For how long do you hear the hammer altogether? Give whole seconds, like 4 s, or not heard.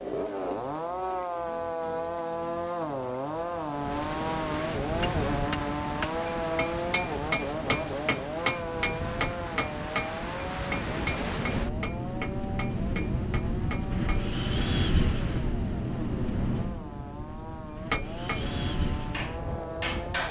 12 s.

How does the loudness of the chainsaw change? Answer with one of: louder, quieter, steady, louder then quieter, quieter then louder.
quieter.